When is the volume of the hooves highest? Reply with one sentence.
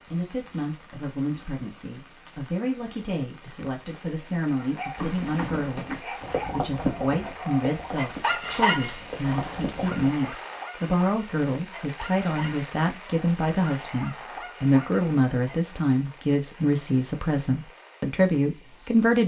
The loudest moment of the hooves is at 7 seconds.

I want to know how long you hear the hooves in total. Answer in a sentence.
You can hear the hooves for 5 seconds altogether.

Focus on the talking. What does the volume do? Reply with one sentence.
The loudness of the talking goes up.